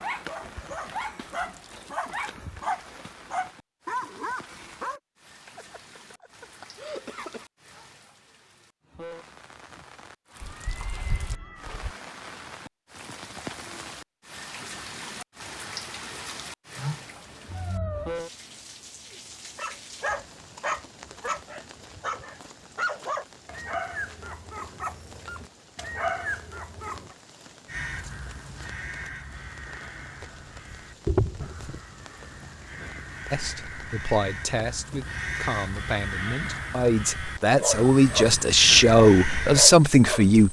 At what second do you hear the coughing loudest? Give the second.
7 s.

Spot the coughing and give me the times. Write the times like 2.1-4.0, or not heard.
5.5-7.5.